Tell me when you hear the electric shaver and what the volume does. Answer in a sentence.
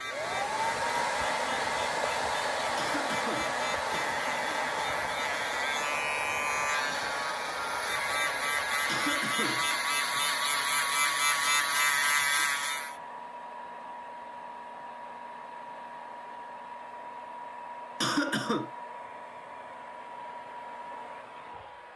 The electric shaver can be heard from 0.0 to 12.9 s, getting louder.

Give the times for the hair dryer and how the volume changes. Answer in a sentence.
The hair dryer can be heard from 0.0 to 21.9 s, getting quieter.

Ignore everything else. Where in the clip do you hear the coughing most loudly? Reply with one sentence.
The volume of the coughing peaks at 18 seconds.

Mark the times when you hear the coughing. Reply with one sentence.
The coughing can be heard from 2.8 to 4.1 s, from 8.8 to 9.7 s and from 18.0 to 18.7 s.